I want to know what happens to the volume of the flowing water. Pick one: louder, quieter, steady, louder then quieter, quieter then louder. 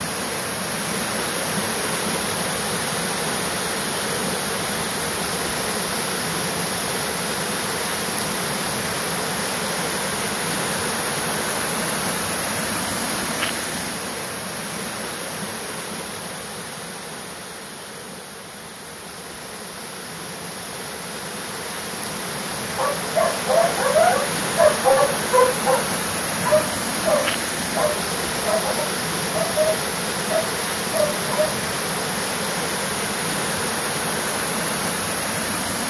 quieter then louder.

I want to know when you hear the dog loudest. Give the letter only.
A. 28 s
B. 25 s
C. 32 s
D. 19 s
B.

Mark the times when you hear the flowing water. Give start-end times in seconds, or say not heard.
0.0-35.8.